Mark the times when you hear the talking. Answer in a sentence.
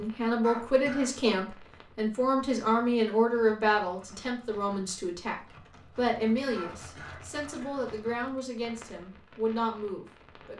You can hear the talking from 0.0 to 10.5 s.